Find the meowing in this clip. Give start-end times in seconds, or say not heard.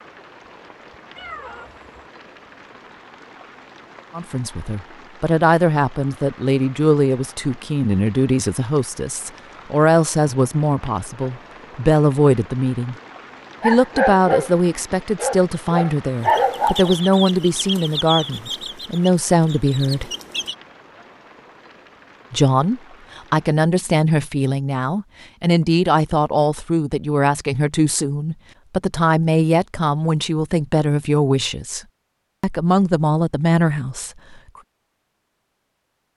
1.1-1.9.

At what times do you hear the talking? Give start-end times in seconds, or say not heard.
4.2-12.9, 13.6-20.1, 22.3-31.8, 32.4-34.1.